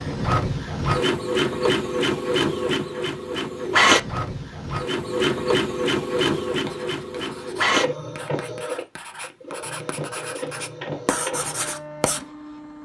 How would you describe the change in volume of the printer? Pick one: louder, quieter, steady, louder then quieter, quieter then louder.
quieter.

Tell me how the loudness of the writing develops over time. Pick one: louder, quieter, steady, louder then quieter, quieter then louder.
louder.